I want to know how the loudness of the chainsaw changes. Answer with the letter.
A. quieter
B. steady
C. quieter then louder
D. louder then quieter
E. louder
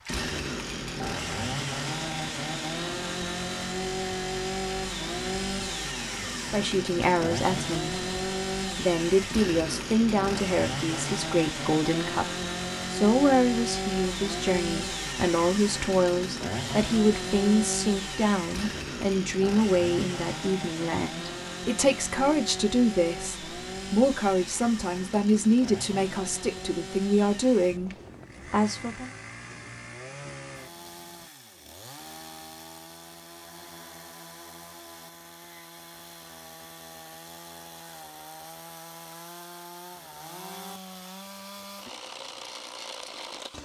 A.